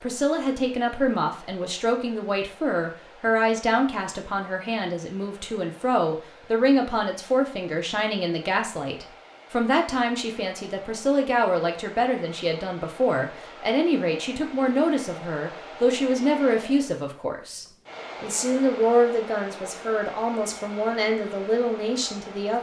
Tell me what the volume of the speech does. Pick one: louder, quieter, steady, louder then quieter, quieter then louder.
steady.